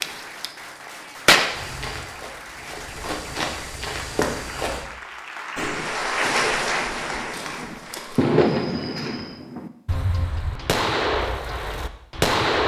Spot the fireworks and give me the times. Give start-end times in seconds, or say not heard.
0.0-1.8, 5.5-12.6.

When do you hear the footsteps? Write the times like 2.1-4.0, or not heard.
1.5-4.8, 7.3-9.4.